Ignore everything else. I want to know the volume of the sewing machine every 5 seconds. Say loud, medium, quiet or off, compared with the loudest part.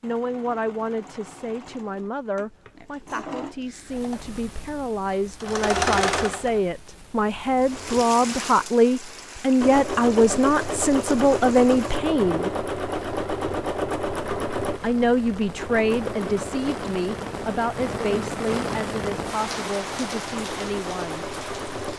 quiet, loud, loud, medium, medium.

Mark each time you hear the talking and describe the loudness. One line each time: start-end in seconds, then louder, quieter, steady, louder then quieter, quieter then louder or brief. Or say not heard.
0.0-12.5 louder
14.8-21.2 quieter.